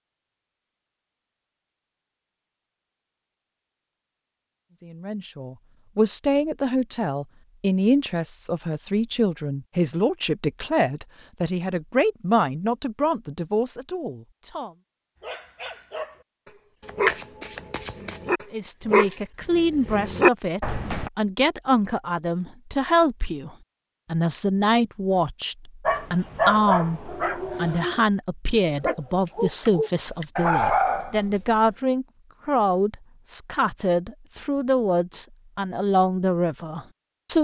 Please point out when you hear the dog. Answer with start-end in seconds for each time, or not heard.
15.2-21.1, 25.9-31.3.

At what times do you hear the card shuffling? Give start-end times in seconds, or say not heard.
16.8-18.4.